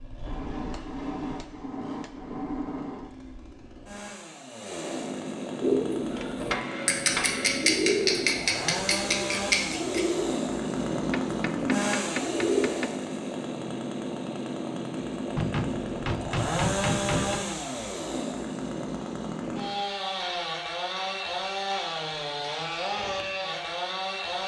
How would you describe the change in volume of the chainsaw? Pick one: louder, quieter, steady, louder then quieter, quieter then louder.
louder.